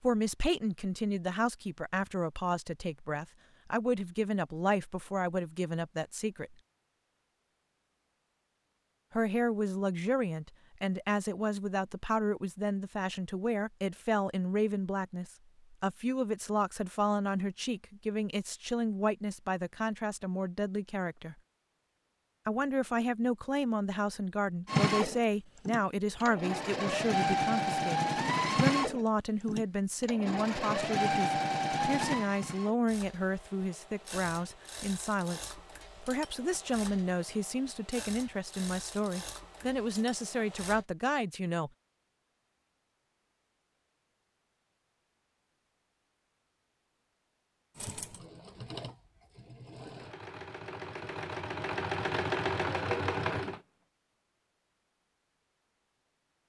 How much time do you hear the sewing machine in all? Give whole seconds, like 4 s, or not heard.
22 s.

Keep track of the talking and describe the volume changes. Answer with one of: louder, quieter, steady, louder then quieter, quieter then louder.
steady.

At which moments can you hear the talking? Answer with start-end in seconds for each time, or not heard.
0.0-6.5, 9.1-21.4, 22.4-41.7.